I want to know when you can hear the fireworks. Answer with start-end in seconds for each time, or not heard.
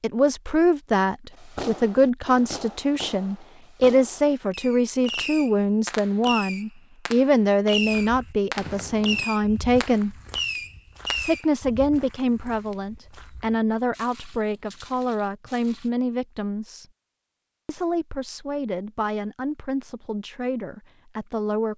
1.3-11.4.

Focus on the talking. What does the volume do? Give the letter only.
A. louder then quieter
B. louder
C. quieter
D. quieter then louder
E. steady
C.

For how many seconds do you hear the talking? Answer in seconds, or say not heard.
20 s.